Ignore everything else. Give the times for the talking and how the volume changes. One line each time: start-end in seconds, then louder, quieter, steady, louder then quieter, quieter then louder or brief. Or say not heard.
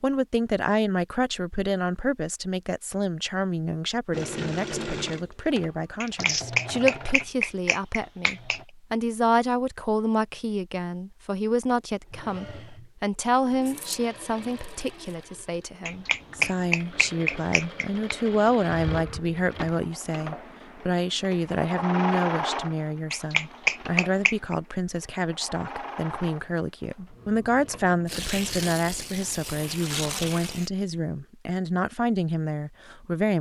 0.0-33.3 steady.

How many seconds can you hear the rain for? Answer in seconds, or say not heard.
not heard.